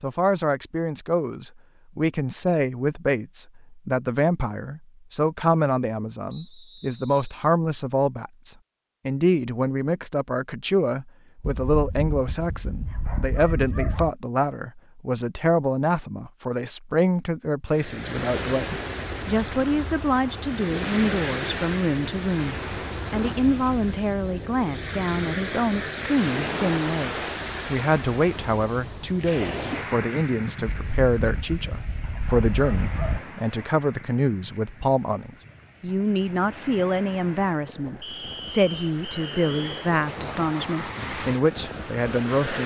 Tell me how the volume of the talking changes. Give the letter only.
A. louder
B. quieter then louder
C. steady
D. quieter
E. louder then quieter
C.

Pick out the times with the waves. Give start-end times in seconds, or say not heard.
17.7-42.6.